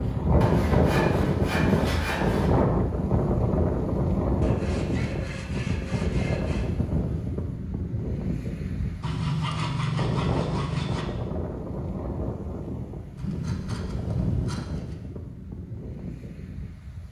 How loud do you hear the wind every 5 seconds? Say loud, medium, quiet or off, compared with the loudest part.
loud, medium, medium, quiet.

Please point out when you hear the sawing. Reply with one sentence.
The sawing can be heard from 0.4 to 2.6 s, from 4.4 to 6.7 s, from 9.0 to 11.1 s and from 13.2 to 14.8 s.